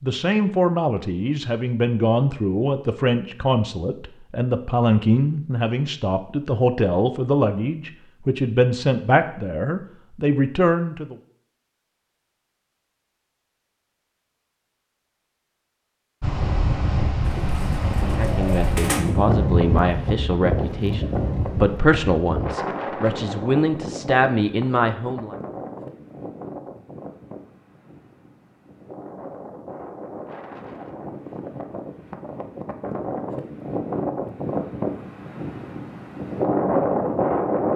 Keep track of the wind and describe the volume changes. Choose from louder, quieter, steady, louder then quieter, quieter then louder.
quieter then louder.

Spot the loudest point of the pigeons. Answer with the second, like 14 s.
19 s.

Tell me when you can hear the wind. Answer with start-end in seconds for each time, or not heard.
16.2-37.7.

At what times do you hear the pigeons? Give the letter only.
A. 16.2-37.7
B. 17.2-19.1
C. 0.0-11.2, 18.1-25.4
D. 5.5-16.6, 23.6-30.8
B.